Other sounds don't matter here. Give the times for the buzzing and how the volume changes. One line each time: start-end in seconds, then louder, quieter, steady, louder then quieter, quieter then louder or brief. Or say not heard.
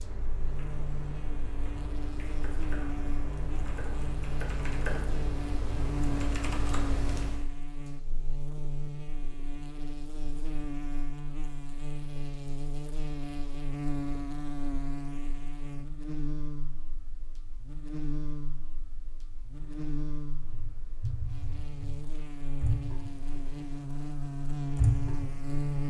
0.0-25.8 steady.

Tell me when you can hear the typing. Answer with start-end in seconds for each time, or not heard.
0.0-7.4, 19.4-25.6.